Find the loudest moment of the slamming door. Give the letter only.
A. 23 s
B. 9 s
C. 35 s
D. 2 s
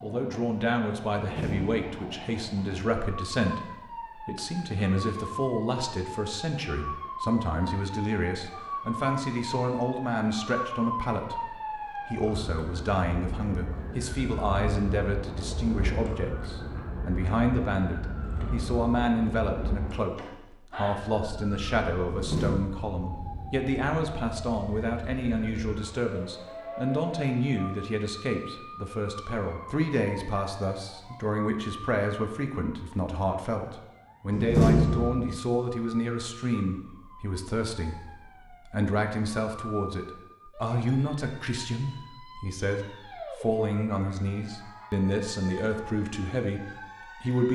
C.